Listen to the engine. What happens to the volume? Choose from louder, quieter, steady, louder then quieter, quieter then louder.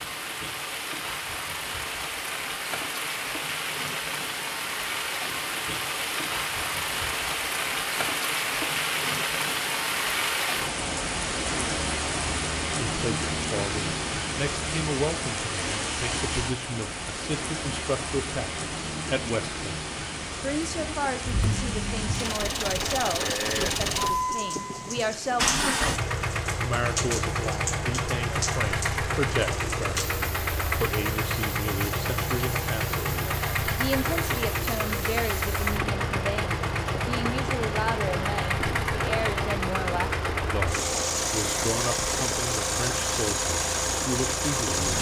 steady.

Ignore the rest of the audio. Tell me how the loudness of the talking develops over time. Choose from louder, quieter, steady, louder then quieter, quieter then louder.
steady.